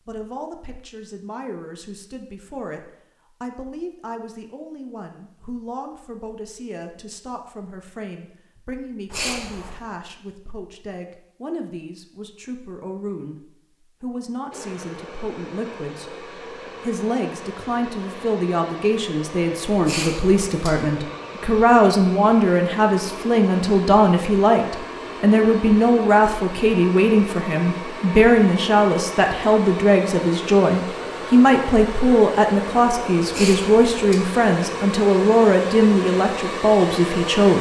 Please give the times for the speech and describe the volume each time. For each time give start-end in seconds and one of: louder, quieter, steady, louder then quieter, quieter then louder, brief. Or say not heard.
0.1-37.5 louder.